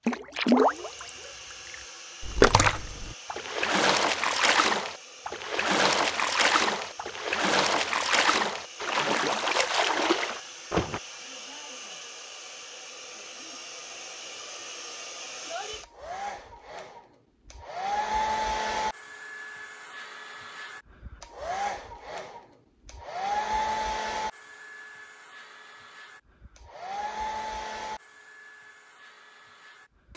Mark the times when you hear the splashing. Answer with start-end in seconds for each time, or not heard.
0.1-11.0.